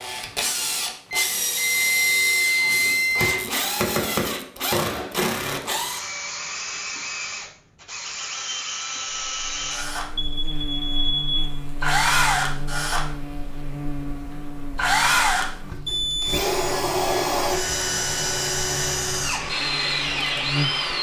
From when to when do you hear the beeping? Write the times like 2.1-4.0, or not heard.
1.1-3.4, 10.2-11.4, 15.8-16.4.